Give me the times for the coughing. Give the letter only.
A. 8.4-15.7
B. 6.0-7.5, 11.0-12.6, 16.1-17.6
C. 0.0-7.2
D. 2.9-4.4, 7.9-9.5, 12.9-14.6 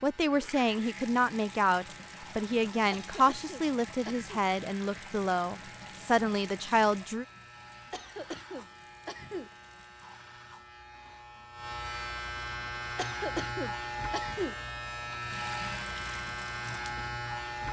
D.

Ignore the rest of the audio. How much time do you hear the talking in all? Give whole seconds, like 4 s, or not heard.
7 s.